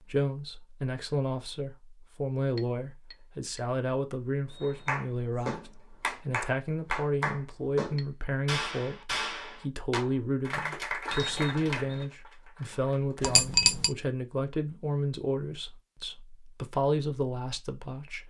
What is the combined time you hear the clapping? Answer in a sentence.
The clapping can be heard for 9 seconds in total.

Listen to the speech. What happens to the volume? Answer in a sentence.
The volume of the speech stays about the same.